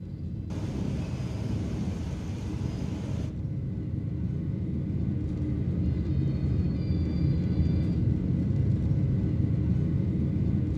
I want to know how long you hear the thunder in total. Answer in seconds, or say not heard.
3 s.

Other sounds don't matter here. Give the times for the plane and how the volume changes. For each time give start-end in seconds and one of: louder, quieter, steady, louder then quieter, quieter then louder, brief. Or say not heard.
0.0-10.7 louder.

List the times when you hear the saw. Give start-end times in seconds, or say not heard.
not heard.